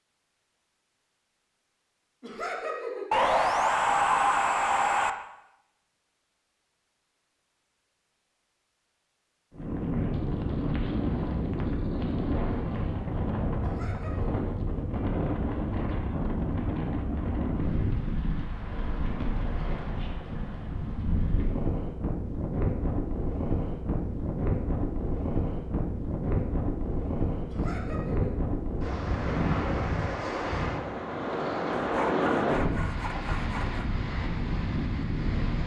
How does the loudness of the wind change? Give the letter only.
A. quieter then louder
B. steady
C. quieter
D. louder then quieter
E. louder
B.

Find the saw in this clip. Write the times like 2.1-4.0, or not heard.
3.1-5.1, 31.8-33.9.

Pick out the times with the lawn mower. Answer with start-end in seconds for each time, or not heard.
not heard.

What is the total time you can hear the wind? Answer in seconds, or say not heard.
26 s.